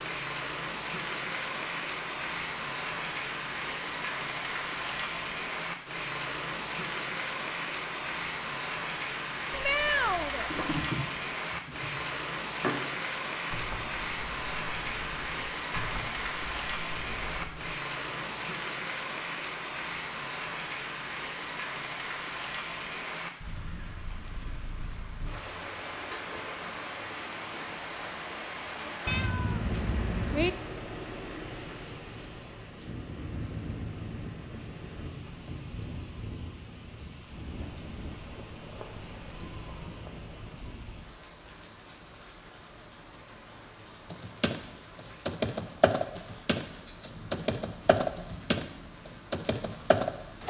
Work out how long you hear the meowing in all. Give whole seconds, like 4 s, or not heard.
3 s.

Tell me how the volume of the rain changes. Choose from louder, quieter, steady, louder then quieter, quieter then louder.
quieter.